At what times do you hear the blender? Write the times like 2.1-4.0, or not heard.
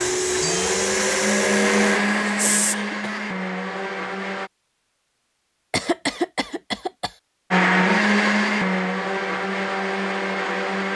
0.0-4.5, 7.5-10.9.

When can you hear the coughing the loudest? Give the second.
6 s.